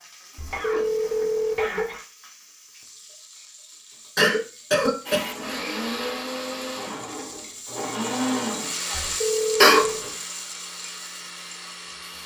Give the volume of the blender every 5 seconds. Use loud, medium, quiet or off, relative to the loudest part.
off, loud, medium.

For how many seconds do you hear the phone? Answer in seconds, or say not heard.
2 s.